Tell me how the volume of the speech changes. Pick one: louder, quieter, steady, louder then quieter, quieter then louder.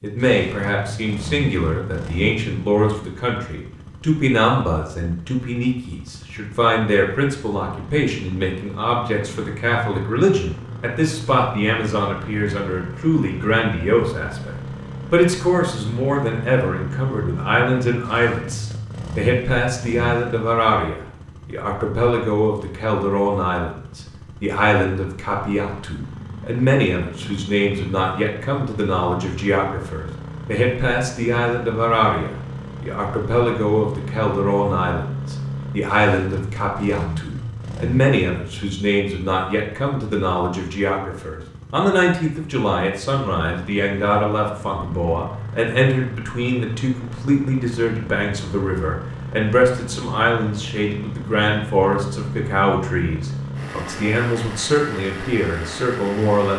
steady.